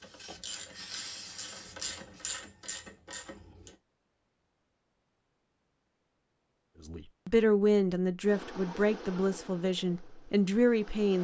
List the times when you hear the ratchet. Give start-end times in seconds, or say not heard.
0.0-3.8.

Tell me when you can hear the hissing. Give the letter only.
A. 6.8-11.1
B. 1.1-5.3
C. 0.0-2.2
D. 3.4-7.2
C.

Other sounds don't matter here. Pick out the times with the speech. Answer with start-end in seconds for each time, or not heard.
6.8-11.1.